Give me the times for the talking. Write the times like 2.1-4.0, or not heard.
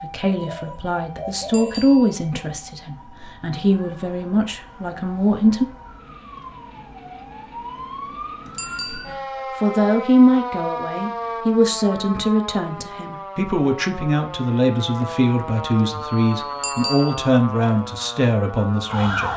0.0-5.7, 9.1-19.3.